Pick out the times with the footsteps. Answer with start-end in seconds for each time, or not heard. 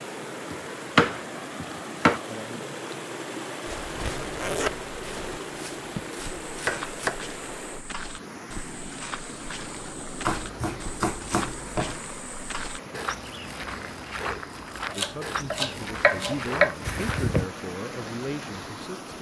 5.9-17.4.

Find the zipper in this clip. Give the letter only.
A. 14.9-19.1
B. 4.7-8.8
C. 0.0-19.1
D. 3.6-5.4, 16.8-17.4
D.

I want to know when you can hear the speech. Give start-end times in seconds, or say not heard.
14.9-19.1.